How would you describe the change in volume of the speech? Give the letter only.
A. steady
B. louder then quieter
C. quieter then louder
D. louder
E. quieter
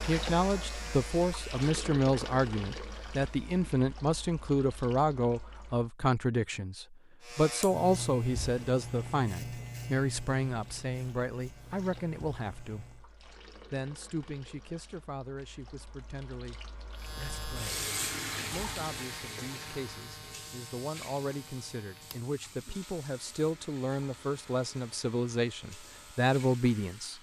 C.